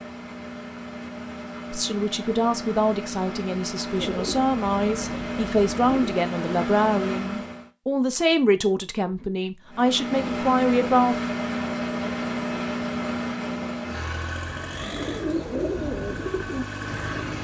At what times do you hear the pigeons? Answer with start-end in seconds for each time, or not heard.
3.9-6.2, 14.4-17.3.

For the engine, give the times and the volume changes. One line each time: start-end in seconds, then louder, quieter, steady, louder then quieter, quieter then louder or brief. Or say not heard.
0.0-7.7 louder
9.7-17.3 quieter.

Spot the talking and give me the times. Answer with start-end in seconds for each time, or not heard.
1.7-11.3.